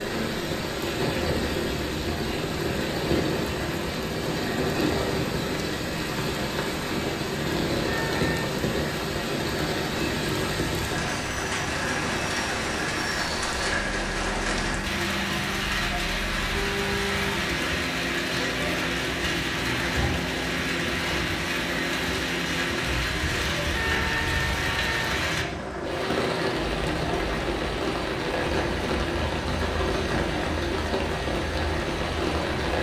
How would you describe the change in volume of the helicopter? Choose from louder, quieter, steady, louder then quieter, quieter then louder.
steady.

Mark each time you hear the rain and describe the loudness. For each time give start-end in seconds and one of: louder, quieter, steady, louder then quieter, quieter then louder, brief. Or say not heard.
0.0-32.7 steady.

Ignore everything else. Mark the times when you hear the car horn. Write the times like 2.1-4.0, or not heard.
7.8-8.4, 16.5-17.4, 23.7-25.2.